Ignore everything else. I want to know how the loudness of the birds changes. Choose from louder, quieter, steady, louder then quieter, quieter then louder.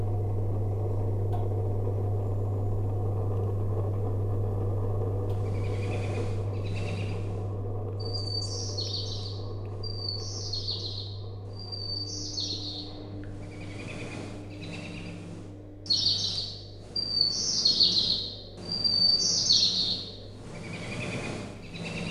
louder.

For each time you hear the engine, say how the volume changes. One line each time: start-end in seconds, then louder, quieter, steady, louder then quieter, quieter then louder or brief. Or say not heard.
0.0-21.9 quieter.